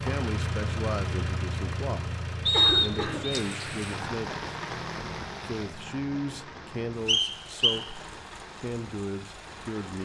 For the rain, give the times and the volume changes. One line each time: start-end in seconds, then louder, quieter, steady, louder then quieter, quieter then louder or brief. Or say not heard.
3.3-9.9 quieter.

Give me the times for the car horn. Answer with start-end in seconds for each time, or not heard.
not heard.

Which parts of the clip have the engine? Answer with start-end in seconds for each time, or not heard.
0.0-9.9.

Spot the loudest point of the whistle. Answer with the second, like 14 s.
3 s.